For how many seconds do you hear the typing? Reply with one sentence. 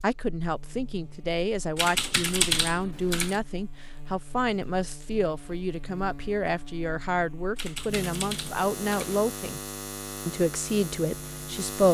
The typing can be heard for 3 seconds in total.